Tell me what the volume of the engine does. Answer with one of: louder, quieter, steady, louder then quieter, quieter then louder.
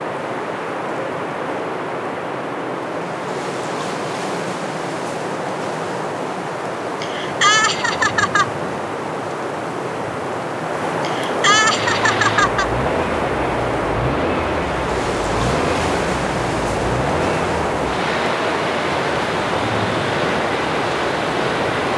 steady.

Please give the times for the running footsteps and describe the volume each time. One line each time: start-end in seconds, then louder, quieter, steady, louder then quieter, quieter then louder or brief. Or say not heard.
not heard.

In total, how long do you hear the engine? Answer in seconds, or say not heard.
10 s.